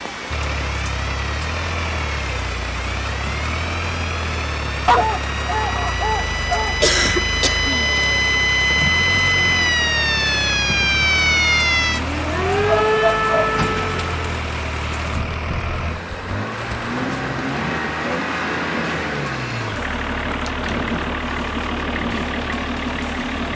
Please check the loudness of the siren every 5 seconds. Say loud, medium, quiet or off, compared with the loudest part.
quiet, loud, loud, off, off.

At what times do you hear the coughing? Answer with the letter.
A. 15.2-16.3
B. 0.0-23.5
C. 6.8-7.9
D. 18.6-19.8
C.